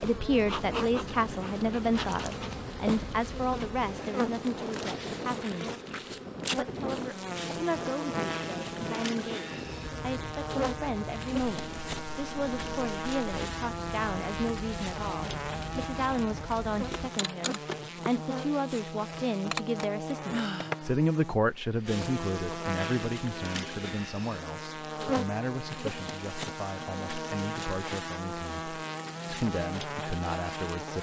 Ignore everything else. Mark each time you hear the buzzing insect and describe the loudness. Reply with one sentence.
The buzzing insect can be heard from 0.0 to 30.9 s, at a steady volume.